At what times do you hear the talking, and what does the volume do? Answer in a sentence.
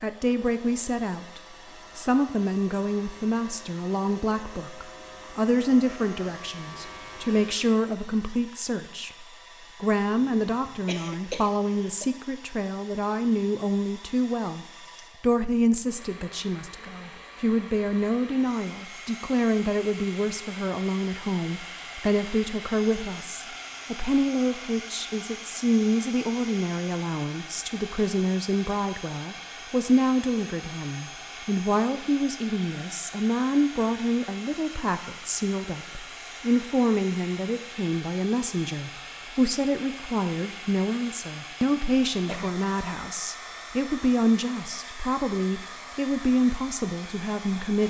You can hear the talking from 0.0 to 47.8 s, at a steady volume.